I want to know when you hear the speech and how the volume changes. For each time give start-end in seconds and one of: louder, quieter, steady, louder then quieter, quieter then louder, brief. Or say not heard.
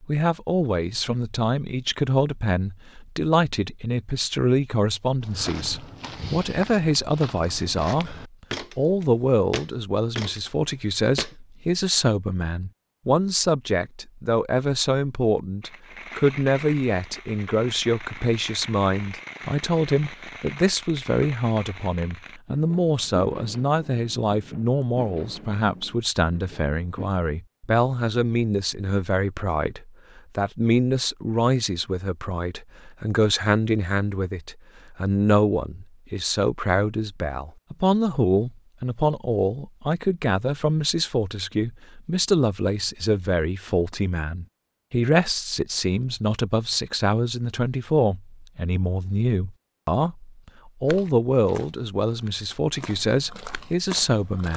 0.0-54.5 steady.